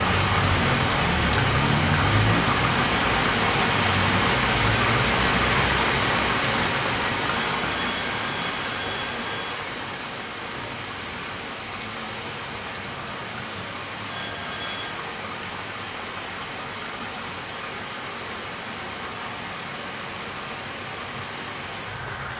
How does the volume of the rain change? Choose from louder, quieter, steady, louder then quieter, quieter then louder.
quieter.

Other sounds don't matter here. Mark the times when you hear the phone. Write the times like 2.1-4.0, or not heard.
7.2-9.6, 14.1-15.0.